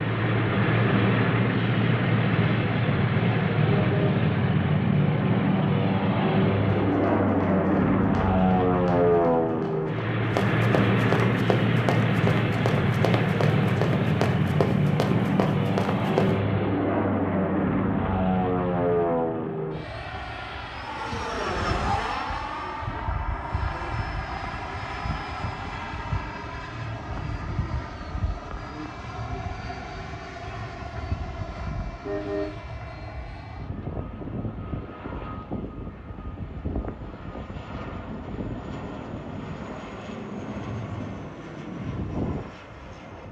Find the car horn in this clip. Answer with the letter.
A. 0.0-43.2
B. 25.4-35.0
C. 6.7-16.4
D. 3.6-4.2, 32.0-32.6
D.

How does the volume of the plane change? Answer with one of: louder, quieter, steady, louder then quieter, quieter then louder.
quieter.